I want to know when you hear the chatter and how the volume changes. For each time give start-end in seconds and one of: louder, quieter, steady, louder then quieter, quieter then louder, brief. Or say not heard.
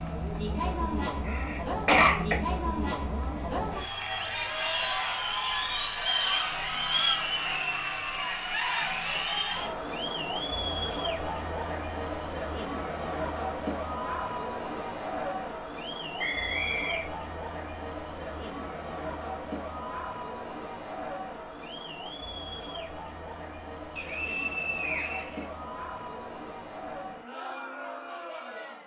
0.0-28.8 quieter.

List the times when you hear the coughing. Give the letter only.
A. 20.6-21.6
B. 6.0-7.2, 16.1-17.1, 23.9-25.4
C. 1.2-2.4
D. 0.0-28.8
C.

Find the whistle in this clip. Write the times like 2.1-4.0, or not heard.
6.0-7.2, 16.1-17.1, 23.9-25.4.